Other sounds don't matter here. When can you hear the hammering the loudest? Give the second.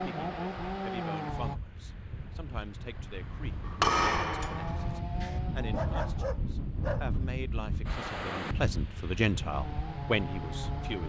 4 s.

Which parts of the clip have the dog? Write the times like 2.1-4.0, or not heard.
5.7-7.1.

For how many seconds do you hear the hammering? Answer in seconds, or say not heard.
2 s.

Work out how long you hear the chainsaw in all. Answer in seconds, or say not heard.
5 s.